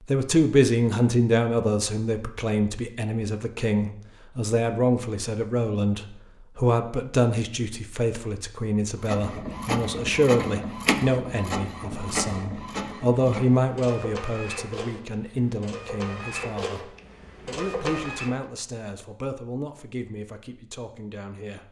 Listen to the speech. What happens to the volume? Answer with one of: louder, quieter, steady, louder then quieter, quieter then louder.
quieter.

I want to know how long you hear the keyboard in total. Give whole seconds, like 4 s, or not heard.
not heard.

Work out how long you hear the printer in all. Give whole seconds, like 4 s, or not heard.
9 s.